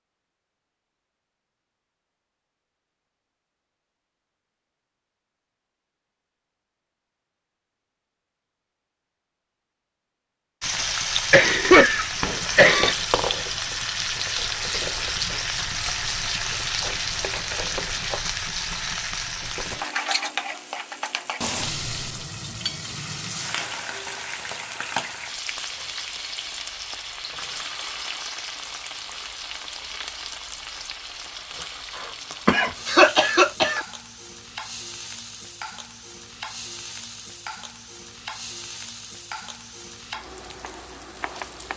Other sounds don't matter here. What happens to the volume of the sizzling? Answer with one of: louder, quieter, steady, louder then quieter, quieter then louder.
quieter.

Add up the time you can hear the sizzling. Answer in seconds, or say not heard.
31 s.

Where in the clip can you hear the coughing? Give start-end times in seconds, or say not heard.
11.3-12.9, 32.5-33.8.